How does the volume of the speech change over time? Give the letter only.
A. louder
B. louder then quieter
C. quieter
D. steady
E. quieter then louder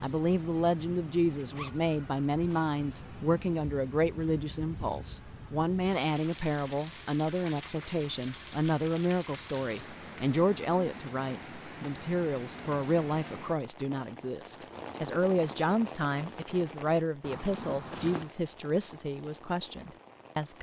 D.